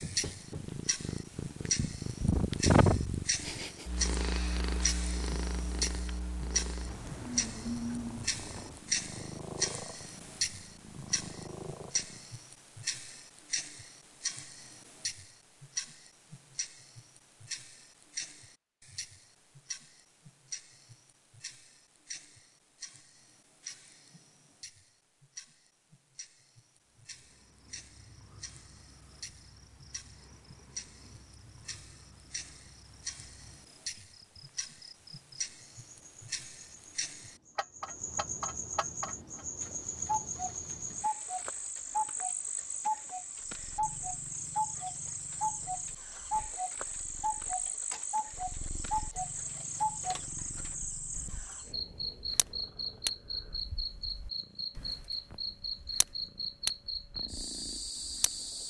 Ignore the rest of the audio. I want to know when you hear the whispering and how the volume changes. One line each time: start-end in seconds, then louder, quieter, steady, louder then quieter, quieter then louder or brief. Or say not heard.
not heard.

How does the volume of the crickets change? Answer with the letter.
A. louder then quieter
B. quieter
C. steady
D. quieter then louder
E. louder
E.